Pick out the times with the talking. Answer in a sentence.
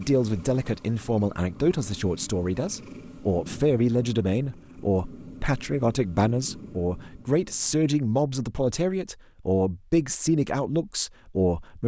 You can hear the talking from 0.0 to 11.8 s.